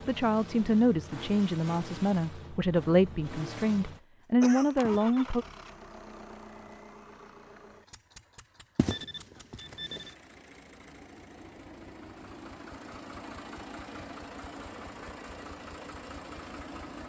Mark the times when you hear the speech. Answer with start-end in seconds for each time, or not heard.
0.1-5.5.